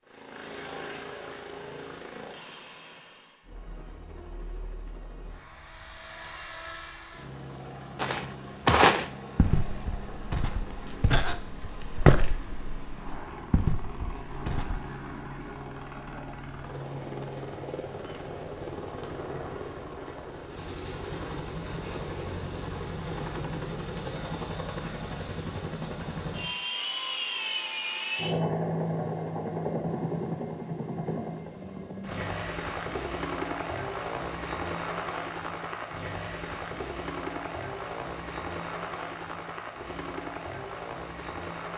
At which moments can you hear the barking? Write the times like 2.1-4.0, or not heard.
not heard.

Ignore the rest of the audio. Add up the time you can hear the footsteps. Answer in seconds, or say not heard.
7 s.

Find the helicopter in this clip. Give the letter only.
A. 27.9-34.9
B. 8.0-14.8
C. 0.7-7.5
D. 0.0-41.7
D.